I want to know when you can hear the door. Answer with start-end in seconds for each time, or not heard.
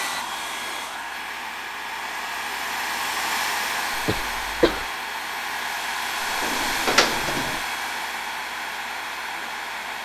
6.2-7.6.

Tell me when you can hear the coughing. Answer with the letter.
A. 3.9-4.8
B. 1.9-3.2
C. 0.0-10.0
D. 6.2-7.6
A.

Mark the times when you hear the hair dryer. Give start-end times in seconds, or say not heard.
0.0-10.0.